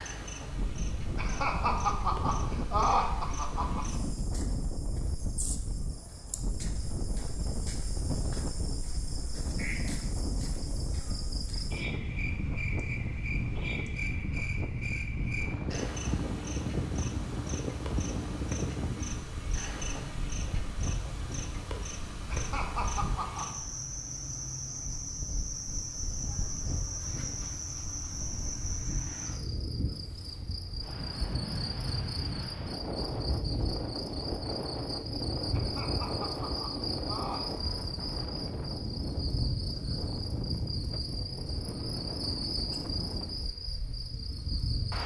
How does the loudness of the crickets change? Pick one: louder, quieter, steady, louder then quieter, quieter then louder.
louder.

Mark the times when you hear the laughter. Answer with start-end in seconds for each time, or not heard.
1.1-3.9, 22.3-23.4, 35.5-37.6.